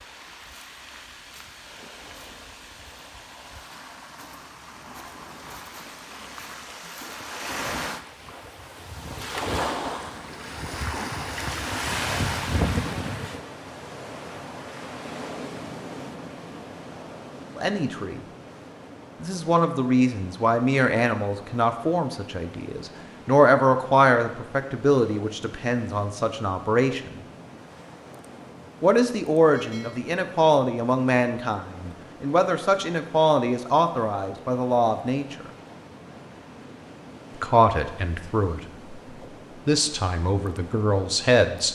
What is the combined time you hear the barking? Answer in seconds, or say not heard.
not heard.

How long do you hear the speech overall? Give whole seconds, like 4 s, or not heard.
20 s.